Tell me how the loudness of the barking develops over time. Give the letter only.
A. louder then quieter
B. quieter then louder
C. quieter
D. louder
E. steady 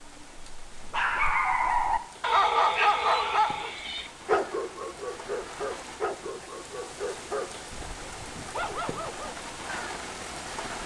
C.